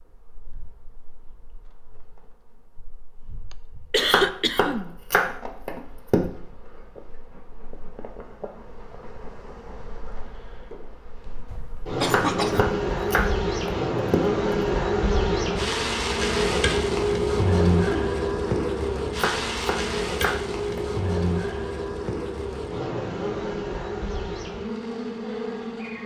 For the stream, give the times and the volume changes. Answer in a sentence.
You can't hear the stream here.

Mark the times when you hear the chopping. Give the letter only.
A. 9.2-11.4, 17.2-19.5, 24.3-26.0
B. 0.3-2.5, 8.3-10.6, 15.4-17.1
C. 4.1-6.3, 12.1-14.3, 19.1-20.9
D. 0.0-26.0
C.